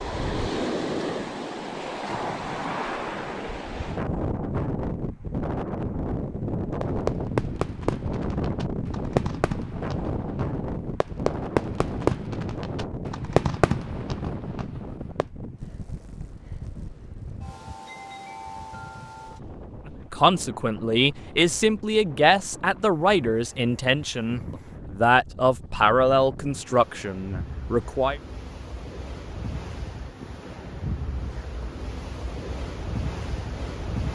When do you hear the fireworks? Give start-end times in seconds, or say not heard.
6.8-15.2.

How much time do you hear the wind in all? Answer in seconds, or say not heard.
34 s.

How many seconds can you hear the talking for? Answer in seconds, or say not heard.
8 s.